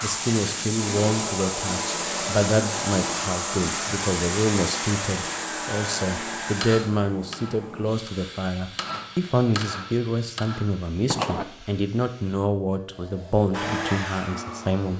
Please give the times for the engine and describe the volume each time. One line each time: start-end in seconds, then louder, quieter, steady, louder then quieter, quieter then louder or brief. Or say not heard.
0.0-6.8 steady
13.5-14.9 brief.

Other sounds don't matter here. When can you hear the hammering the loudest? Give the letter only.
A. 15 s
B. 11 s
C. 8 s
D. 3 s
B.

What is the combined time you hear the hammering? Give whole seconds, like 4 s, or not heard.
5 s.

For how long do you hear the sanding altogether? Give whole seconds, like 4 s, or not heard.
not heard.